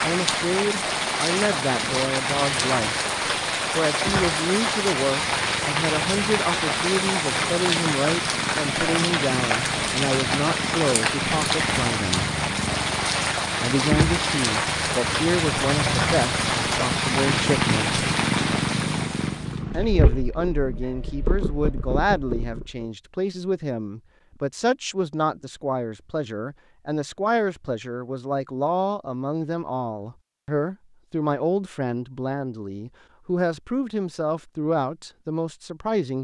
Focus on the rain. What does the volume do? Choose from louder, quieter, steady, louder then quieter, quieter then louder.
steady.